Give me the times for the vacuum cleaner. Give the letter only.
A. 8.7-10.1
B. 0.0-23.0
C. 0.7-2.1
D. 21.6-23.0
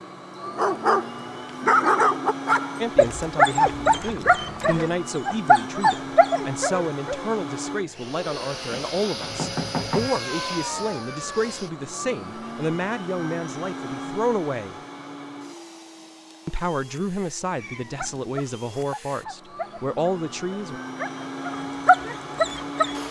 B.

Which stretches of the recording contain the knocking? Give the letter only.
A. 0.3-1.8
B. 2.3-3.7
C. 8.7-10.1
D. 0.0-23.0
C.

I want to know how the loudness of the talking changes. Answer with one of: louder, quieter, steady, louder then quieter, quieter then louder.
steady.